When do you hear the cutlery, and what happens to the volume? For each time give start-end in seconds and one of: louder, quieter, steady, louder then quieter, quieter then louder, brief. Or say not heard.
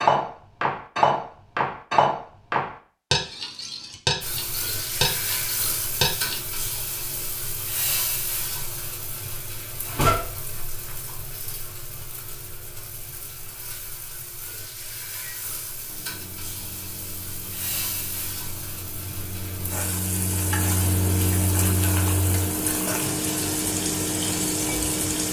0.0-6.3 quieter.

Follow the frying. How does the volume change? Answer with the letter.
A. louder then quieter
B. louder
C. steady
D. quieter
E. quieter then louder
E.